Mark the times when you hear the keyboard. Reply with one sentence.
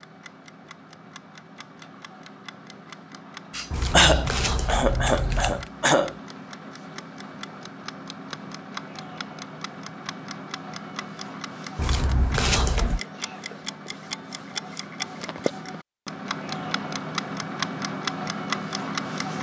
The keyboard can't be heard in this clip.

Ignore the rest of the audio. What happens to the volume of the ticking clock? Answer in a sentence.
The loudness of the ticking clock goes up.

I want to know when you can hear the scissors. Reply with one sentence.
The scissors can be heard from 3.7 to 5.7 s and from 11.8 to 13.0 s.